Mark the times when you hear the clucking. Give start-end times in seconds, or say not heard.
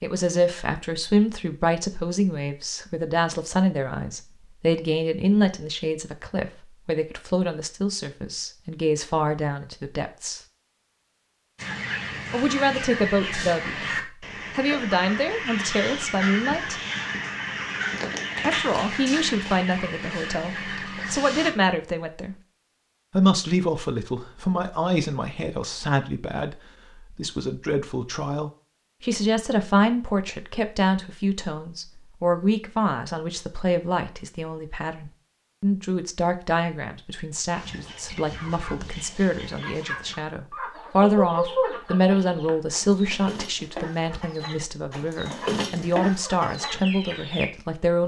11.6-21.5, 37.5-47.5.